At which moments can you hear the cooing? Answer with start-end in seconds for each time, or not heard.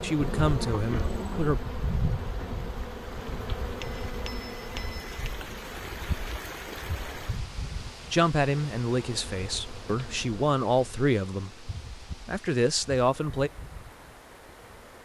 not heard.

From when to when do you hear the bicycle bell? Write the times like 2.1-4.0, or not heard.
3.8-5.2.